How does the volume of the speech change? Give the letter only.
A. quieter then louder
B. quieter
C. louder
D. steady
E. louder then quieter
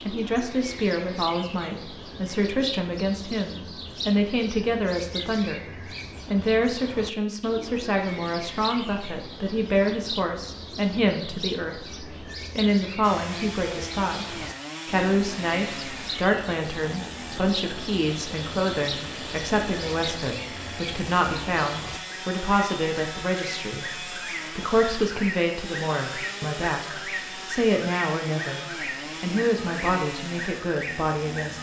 D.